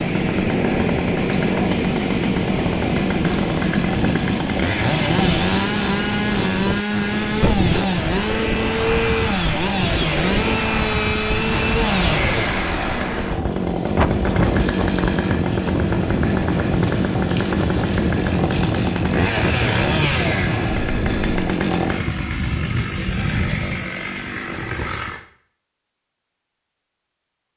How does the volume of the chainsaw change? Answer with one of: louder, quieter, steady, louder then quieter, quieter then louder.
steady.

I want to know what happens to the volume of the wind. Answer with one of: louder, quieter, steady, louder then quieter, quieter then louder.
steady.